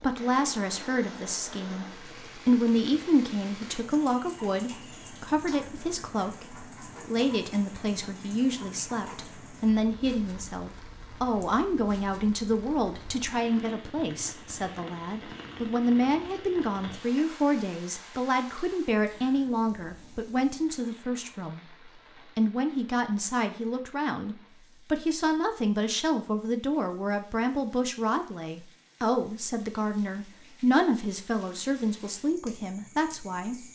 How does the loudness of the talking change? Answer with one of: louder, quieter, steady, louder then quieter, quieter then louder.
steady.